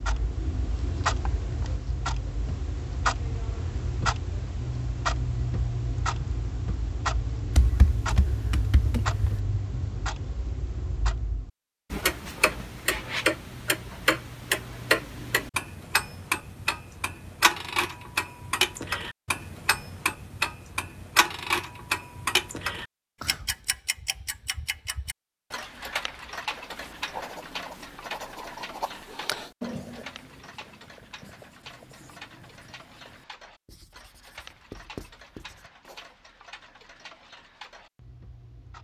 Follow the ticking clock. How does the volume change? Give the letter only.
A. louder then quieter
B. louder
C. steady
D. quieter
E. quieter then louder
D.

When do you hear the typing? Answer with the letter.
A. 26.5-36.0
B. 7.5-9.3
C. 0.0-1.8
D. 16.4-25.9
B.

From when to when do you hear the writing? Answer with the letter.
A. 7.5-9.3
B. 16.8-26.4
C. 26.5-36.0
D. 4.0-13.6
C.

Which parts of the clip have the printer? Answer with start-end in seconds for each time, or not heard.
not heard.